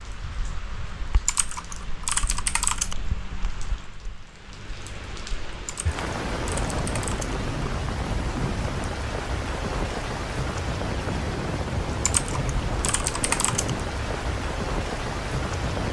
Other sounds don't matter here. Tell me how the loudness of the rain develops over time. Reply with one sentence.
The volume of the rain goes up.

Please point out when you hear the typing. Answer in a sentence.
The typing can be heard from 1.2 to 3.0 s, from 5.7 to 7.3 s and from 12.0 to 13.7 s.